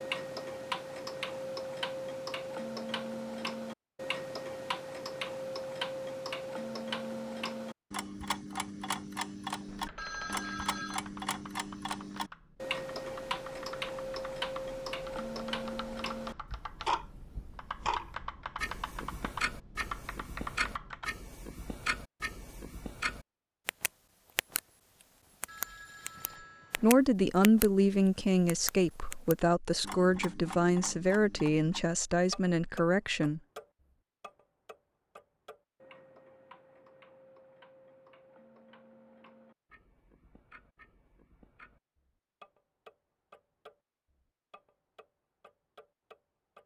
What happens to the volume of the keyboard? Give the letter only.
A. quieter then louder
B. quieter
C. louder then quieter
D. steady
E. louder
E.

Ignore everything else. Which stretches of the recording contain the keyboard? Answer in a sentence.
You can hear the keyboard from 9.7 to 21.1 s.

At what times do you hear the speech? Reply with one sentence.
The speech can be heard from 26.8 to 33.4 s.